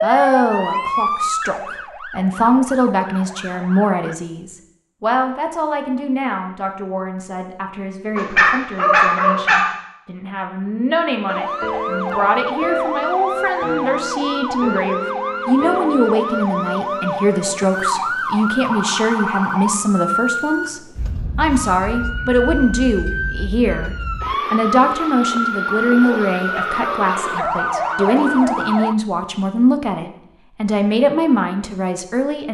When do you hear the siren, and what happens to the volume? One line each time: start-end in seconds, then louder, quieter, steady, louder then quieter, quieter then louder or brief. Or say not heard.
0.0-4.2 quieter
11.2-28.9 steady.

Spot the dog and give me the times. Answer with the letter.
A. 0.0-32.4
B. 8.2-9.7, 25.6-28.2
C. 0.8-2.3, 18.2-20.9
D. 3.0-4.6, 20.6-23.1
B.